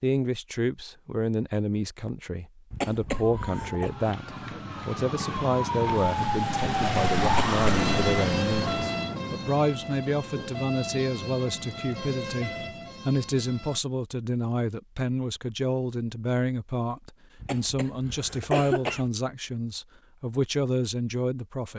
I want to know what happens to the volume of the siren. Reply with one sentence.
The loudness of the siren goes up, then down.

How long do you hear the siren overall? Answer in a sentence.
The siren can be heard for 11 seconds in total.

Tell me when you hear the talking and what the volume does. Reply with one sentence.
You can hear the talking from 0.0 to 21.7 s, at a steady volume.